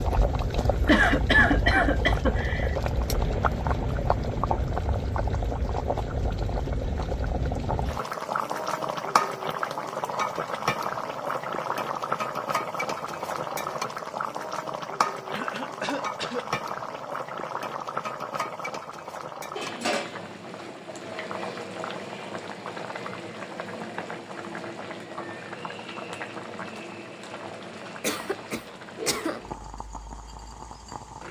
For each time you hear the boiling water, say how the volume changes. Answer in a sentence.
You can hear the boiling water from 0.0 to 31.2 s, getting quieter.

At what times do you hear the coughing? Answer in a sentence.
The coughing can be heard from 0.8 to 2.8 s, from 15.3 to 16.5 s and from 28.0 to 29.4 s.